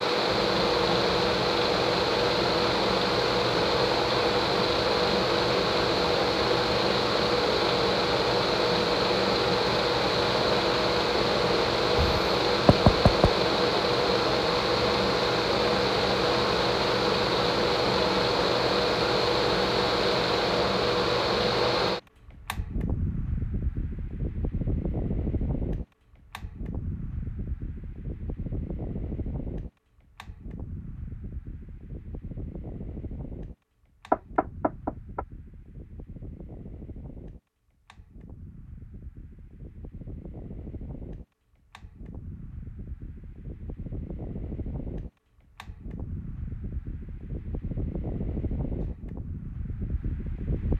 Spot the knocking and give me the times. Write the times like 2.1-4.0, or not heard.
11.9-13.3, 34.1-35.2.